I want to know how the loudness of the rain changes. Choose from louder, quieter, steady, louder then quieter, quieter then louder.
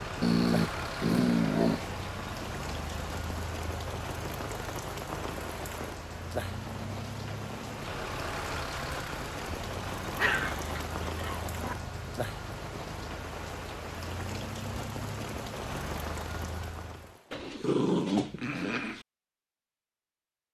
steady.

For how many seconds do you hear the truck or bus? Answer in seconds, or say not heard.
17 s.